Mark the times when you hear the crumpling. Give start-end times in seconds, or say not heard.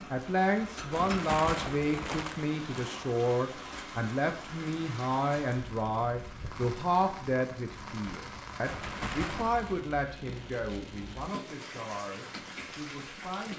0.9-3.0, 8.6-9.8.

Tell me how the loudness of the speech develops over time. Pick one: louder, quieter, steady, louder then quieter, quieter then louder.
quieter.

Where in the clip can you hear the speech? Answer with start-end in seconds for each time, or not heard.
0.1-13.5.